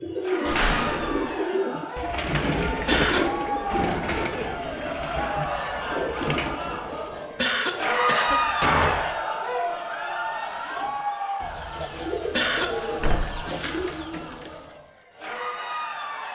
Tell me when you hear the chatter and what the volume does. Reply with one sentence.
The chatter can be heard from 0.0 to 16.2 s, getting louder then quieter.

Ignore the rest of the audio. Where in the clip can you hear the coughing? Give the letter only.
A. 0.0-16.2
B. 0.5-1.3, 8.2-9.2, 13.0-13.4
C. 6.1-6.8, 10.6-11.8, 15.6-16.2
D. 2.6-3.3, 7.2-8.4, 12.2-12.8
D.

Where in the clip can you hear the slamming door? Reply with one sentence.
The slamming door can be heard from 0.5 to 1.3 s, from 8.2 to 9.2 s and from 13.0 to 13.4 s.